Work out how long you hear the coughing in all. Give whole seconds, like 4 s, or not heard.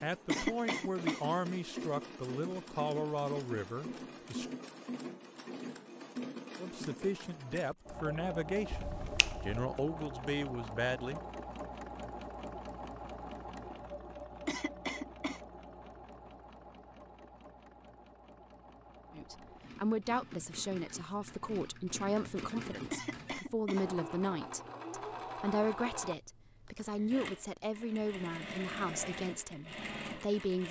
3 s.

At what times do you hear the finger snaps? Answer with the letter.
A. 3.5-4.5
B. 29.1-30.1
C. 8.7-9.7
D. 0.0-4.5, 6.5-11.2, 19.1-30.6
C.